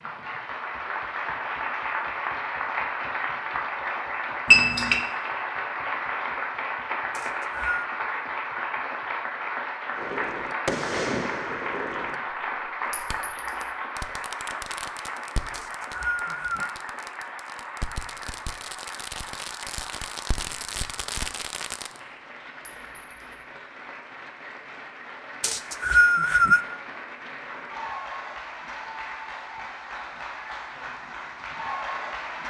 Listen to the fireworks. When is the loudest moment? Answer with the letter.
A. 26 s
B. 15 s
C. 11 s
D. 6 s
C.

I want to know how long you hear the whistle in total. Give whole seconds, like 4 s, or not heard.
3 s.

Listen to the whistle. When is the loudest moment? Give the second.
26 s.